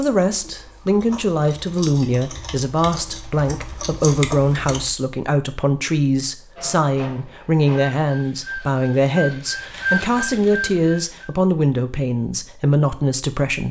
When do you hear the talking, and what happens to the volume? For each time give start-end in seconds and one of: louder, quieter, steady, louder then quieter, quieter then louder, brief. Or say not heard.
0.0-13.6 steady.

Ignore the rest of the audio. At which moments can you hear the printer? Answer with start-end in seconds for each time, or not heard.
6.5-11.2.